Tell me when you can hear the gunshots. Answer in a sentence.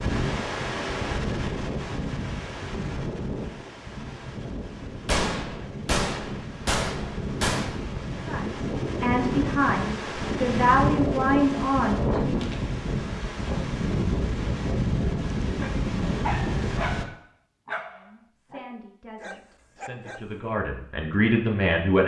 The gunshots can be heard from 5.0 to 7.9 s.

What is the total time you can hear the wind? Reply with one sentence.
You can hear the wind for 17 seconds altogether.